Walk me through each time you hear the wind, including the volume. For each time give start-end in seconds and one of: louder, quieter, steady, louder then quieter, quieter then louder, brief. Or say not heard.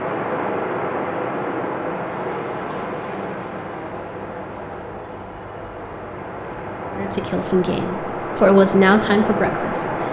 0.0-10.0 quieter then louder.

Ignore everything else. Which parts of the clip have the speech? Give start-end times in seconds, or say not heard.
6.9-9.8.